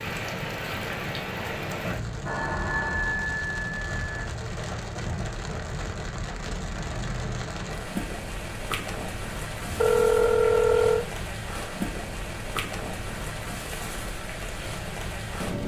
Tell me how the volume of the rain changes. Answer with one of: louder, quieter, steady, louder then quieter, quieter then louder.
steady.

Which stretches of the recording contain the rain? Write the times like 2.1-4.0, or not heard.
0.0-15.6.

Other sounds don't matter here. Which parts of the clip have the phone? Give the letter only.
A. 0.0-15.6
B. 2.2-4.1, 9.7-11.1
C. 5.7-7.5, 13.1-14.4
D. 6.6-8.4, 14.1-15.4
B.